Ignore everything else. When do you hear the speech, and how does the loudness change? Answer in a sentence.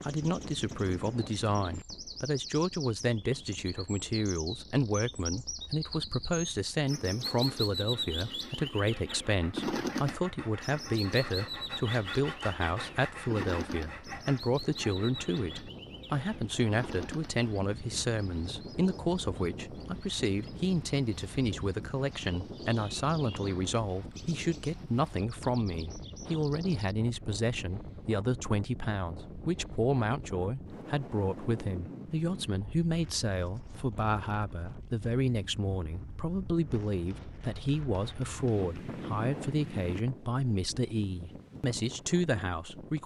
You can hear the speech from 0.0 to 43.0 s, at a steady volume.